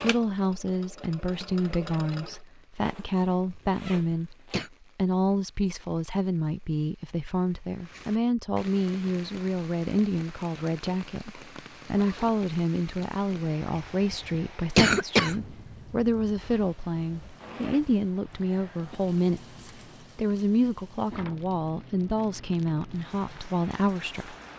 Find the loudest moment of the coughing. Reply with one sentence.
The volume of the coughing peaks at 15 seconds.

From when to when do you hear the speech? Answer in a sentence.
The speech can be heard from 0.0 to 4.3 s and from 5.0 to 24.4 s.